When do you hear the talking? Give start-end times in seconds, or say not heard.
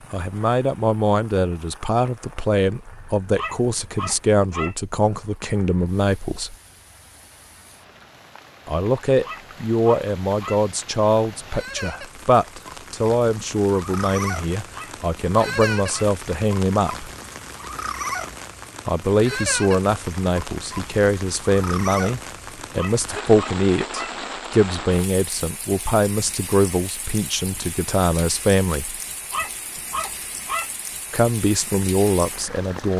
0.1-6.5, 8.7-17.1, 18.9-29.0, 31.1-32.9.